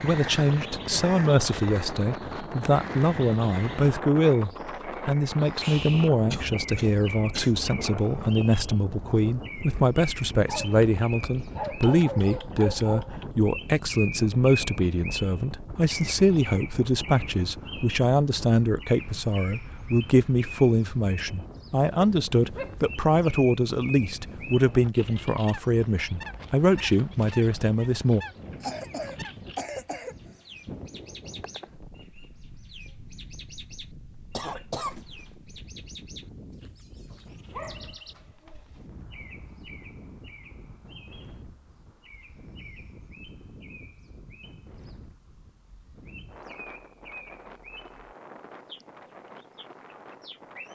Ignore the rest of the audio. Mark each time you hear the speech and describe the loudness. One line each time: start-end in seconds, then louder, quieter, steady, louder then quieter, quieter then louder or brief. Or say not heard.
0.0-28.2 steady.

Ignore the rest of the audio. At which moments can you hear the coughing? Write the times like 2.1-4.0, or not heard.
6.3-7.5, 28.6-30.3, 34.3-35.0.